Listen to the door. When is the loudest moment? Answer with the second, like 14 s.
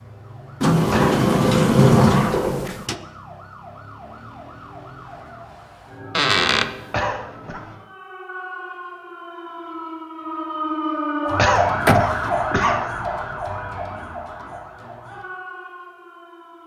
2 s.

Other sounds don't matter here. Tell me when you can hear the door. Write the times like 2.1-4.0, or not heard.
0.6-3.0, 6.2-6.8, 11.8-12.6.